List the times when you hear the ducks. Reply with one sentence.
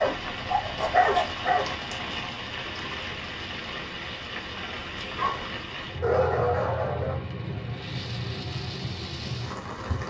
The ducks can't be heard in this clip.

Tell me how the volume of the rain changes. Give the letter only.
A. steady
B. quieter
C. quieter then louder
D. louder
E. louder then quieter
A.